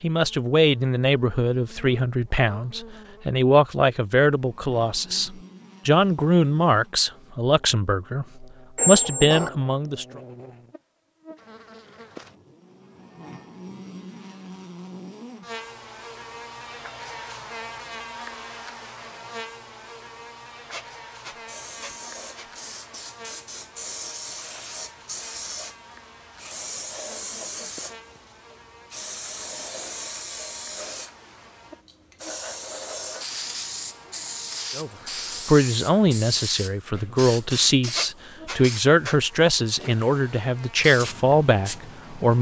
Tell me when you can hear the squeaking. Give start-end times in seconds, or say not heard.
8.8-9.5, 20.7-22.4, 38.0-39.1.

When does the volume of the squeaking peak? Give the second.
9 s.